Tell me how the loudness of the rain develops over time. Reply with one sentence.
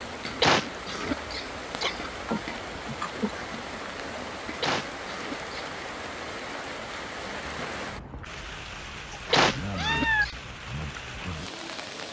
The loudness of the rain stays about the same.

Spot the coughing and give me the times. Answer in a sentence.
You can hear the coughing from 0.4 to 2.1 s, from 4.6 to 5.5 s and from 9.3 to 10.3 s.